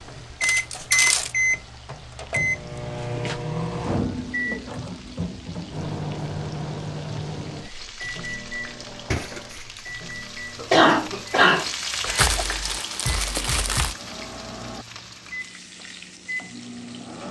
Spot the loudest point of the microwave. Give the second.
1 s.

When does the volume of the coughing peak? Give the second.
11 s.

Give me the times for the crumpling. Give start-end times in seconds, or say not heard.
0.4-1.3, 9.1-9.9, 12.1-13.9.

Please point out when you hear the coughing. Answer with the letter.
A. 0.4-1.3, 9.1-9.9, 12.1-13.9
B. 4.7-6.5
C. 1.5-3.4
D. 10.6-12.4
D.